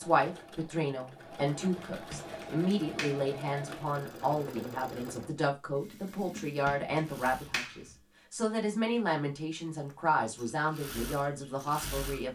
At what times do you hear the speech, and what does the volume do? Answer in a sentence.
You can hear the speech from 0.0 to 12.2 s, at a steady volume.